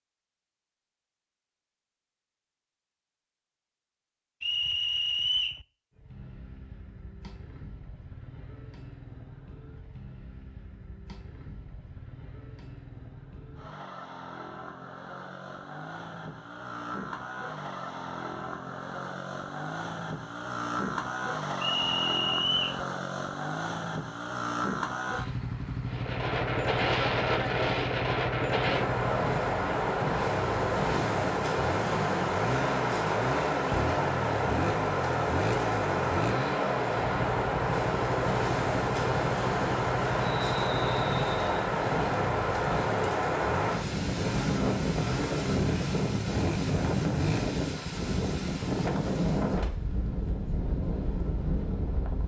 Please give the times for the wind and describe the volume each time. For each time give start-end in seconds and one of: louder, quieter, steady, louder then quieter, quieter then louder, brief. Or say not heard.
25.9-52.2 steady.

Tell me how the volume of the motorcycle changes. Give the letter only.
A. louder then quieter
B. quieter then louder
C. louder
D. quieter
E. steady
C.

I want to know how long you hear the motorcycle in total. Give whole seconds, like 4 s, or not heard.
42 s.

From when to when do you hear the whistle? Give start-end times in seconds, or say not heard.
4.4-5.6, 21.6-22.8, 40.2-41.7.